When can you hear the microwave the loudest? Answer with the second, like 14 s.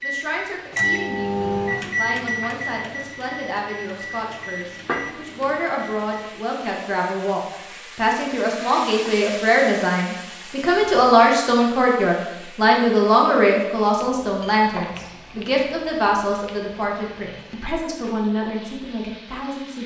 1 s.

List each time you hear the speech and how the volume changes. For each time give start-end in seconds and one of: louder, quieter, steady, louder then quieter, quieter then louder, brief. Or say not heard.
0.0-19.8 louder then quieter.